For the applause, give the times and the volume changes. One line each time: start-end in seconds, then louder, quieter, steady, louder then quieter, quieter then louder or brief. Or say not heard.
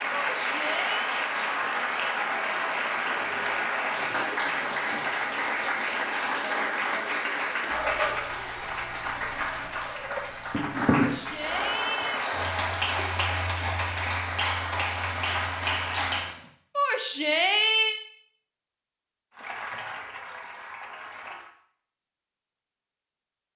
0.0-16.4 steady
19.4-21.5 brief.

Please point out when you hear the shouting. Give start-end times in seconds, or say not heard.
0.1-1.1, 10.9-12.2, 16.8-18.0.